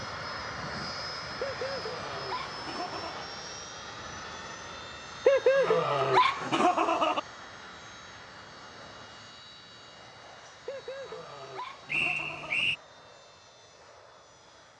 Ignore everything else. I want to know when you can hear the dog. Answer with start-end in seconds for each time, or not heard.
1.4-3.3, 5.2-7.2, 10.7-12.7.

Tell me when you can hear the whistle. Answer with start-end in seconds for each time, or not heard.
11.8-12.8.